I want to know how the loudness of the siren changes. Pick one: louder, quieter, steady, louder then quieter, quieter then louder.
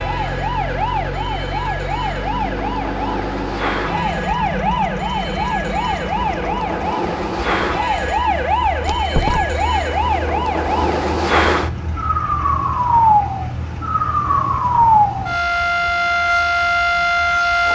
louder.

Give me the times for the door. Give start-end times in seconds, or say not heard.
8.8-9.5.